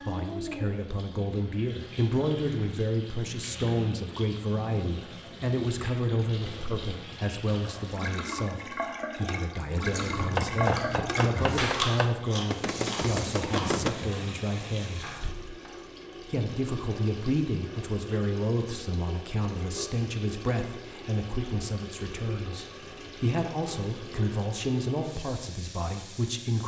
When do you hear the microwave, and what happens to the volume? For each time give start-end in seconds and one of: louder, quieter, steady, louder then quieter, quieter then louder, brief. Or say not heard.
not heard.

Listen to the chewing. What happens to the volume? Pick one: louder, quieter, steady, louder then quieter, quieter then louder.
louder then quieter.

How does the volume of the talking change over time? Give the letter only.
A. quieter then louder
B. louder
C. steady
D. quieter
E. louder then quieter
C.